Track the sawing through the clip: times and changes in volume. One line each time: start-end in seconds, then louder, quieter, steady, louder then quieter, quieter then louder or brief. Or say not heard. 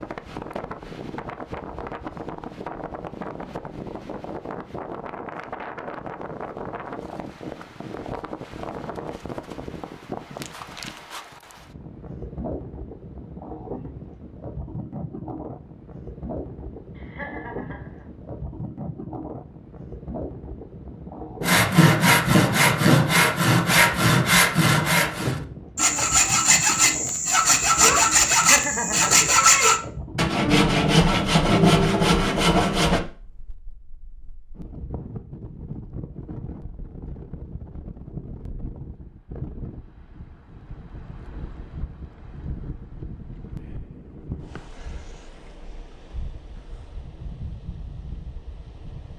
21.4-33.0 steady.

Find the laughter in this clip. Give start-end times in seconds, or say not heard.
16.9-18.1, 28.3-29.2.